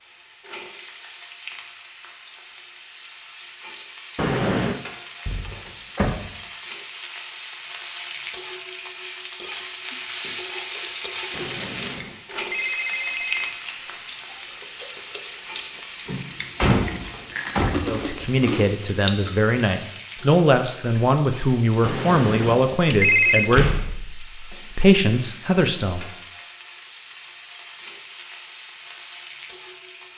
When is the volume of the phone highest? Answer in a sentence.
The volume of the phone peaks at 23 seconds.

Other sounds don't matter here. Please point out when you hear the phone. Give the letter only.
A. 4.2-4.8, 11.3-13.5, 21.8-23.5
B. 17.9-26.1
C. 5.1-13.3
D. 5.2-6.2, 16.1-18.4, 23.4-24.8
A.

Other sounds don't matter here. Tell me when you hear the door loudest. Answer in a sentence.
The volume of the door peaks at 17 seconds.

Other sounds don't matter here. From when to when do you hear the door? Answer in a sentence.
You can hear the door from 5.2 to 6.2 s, from 16.1 to 18.4 s and from 23.4 to 24.8 s.